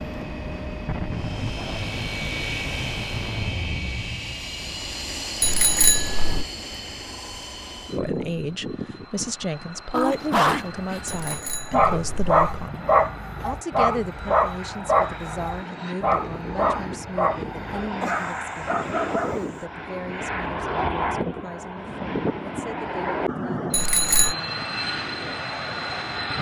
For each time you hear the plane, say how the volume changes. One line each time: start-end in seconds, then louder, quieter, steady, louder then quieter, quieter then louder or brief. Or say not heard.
0.0-26.3 quieter then louder.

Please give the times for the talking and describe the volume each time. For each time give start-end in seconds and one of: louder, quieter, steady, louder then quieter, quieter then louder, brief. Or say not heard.
8.0-24.6 quieter.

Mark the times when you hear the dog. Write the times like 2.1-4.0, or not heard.
9.9-19.7.